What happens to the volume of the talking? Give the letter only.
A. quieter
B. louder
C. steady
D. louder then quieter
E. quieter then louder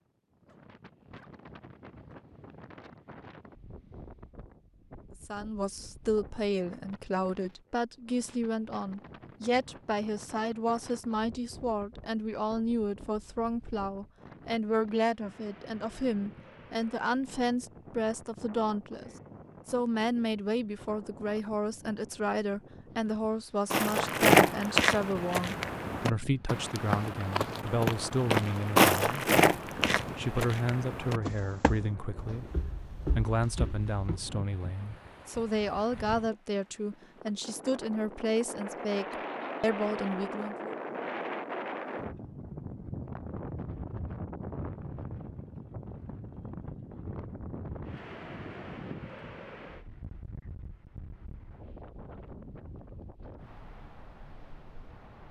C.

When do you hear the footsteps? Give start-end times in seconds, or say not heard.
23.7-34.2.